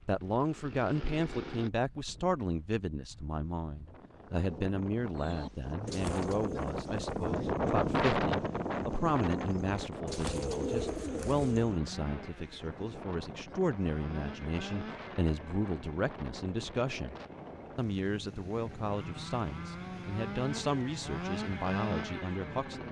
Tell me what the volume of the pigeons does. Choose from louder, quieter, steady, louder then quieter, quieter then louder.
quieter then louder.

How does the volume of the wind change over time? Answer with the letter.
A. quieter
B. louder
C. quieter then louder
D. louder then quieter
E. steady
D.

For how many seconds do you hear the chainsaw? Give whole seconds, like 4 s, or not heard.
14 s.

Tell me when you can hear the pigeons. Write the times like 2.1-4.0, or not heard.
5.2-11.8.